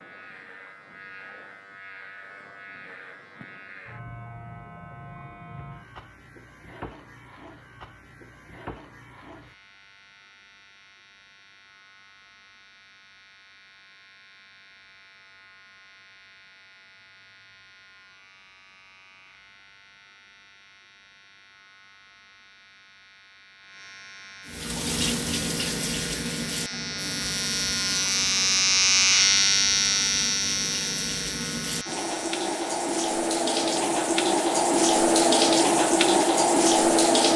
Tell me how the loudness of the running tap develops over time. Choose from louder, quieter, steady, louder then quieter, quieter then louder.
quieter then louder.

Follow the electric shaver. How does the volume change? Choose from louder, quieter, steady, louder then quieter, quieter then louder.
quieter then louder.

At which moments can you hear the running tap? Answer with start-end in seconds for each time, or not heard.
24.4-37.3.